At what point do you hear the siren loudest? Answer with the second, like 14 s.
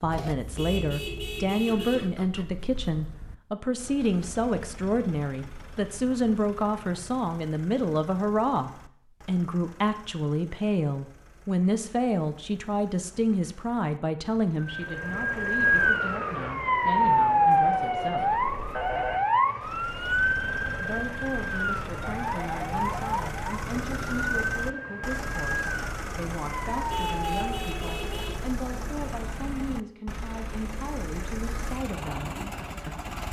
17 s.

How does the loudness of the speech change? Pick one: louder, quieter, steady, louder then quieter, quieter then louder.
quieter.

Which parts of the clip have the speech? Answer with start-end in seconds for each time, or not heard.
0.0-18.4, 20.8-33.1.